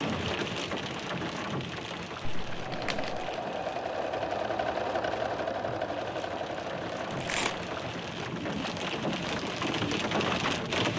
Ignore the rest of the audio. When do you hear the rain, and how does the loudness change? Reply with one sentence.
You can hear the rain from 0.0 to 10.9 s, getting quieter then louder.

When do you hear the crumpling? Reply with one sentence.
You can hear the crumpling from 2.3 to 3.3 s and from 7.1 to 7.5 s.